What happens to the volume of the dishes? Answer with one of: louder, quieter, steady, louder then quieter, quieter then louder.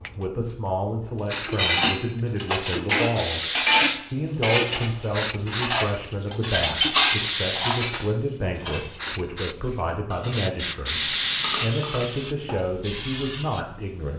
quieter.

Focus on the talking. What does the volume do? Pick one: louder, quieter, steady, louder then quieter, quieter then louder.
steady.